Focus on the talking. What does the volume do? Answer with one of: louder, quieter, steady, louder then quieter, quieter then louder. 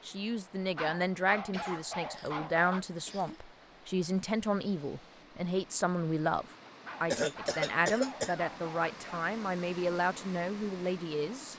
steady.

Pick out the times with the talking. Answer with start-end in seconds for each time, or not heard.
0.1-11.5.